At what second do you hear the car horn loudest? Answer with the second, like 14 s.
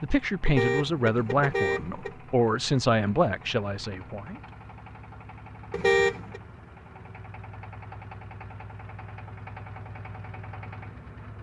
6 s.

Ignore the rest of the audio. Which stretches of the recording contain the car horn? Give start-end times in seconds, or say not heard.
0.5-2.1, 5.7-6.4.